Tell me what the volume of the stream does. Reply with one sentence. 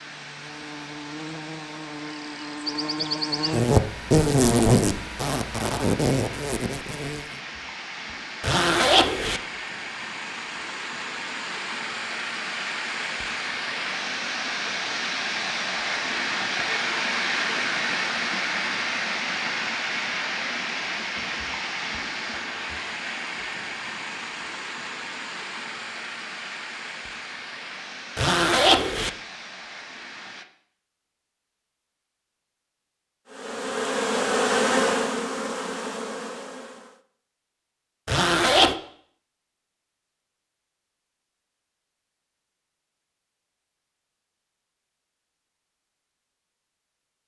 The loudness of the stream goes up, then down.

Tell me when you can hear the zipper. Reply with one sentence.
The zipper can be heard from 8.4 to 9.4 s, from 28.1 to 29.1 s and from 38.0 to 38.8 s.